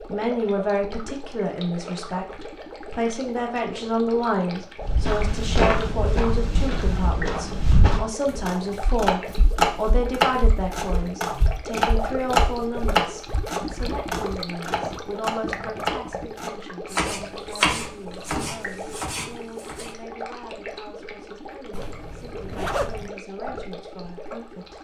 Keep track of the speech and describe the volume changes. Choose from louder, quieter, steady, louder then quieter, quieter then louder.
quieter.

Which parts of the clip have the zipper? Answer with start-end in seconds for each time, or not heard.
21.7-23.1.